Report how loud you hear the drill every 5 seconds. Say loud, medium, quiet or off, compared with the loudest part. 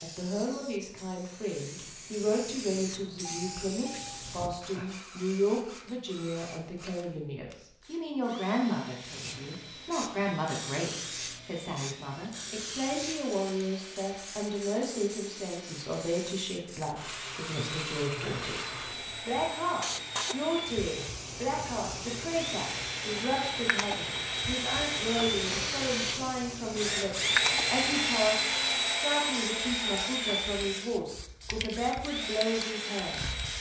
quiet, quiet, quiet, quiet, medium, loud, medium.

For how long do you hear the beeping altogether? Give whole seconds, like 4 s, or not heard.
2 s.